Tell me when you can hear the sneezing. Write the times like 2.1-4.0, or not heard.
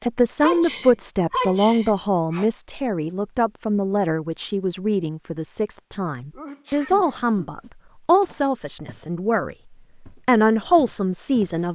0.4-2.5, 6.3-7.5.